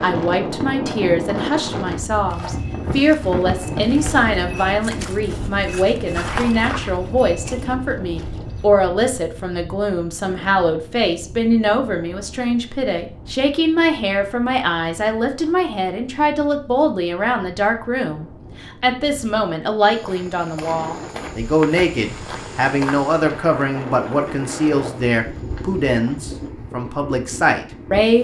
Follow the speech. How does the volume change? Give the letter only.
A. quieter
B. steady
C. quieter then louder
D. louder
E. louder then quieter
B.